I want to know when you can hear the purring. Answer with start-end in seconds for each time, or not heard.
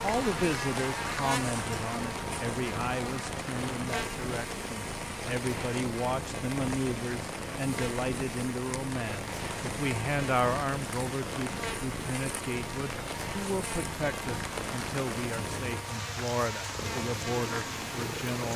0.0-18.5.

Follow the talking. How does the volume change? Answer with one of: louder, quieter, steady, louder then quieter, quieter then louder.
steady.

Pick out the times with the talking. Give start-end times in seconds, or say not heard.
0.0-18.5.